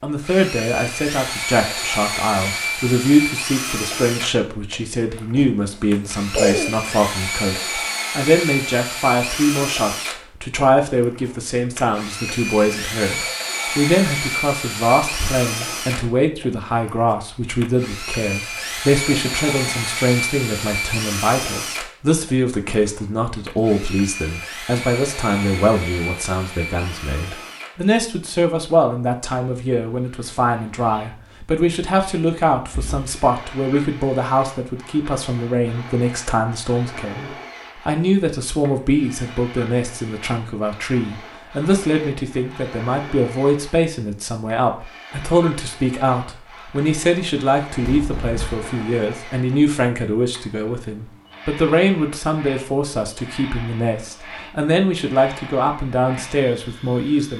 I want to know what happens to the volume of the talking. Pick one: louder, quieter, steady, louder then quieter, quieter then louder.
steady.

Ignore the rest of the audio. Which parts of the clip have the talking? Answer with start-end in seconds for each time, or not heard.
0.0-57.3.